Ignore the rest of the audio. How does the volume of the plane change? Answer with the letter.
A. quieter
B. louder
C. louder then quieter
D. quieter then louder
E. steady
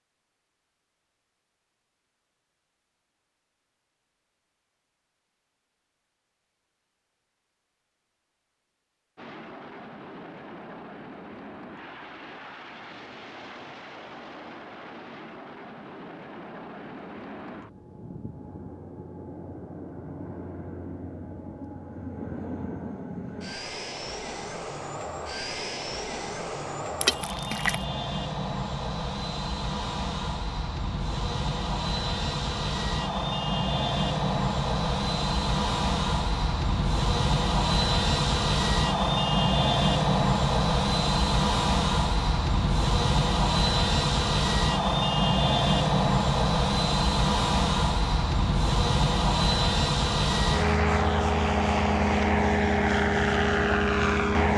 B.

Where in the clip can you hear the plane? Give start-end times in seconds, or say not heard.
9.2-54.5.